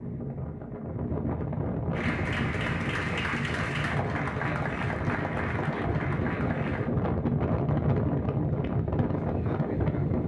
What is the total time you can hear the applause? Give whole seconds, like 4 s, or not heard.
5 s.